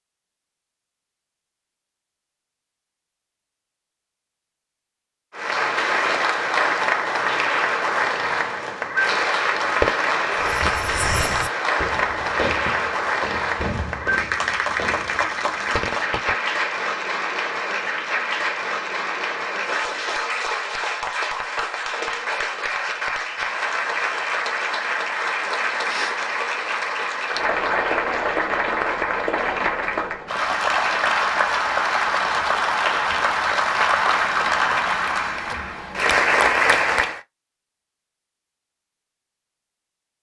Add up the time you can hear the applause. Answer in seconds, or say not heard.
32 s.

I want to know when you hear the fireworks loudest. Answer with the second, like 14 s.
10 s.